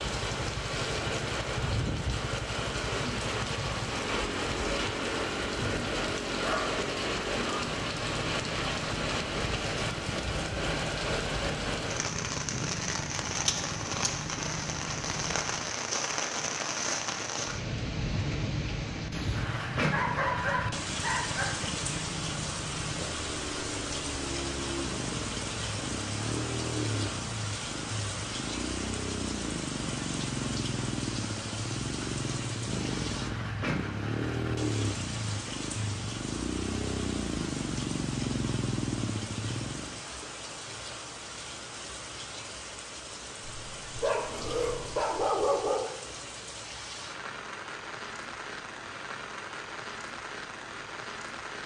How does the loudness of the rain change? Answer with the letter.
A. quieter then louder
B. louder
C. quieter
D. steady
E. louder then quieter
C.